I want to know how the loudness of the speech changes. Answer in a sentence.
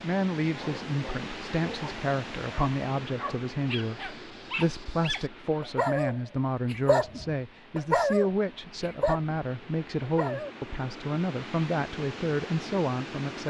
The volume of the speech stays about the same.